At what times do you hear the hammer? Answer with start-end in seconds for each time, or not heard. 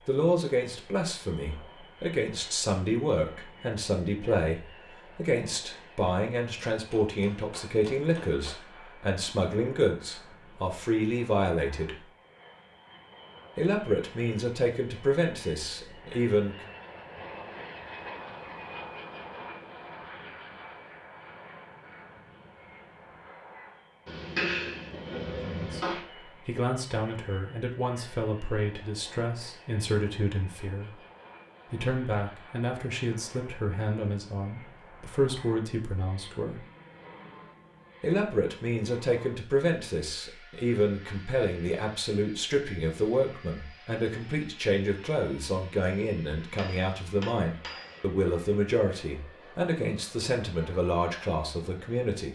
6.7-8.6, 24.1-26.1, 46.5-48.0.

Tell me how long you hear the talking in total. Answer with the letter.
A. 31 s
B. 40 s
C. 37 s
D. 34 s
B.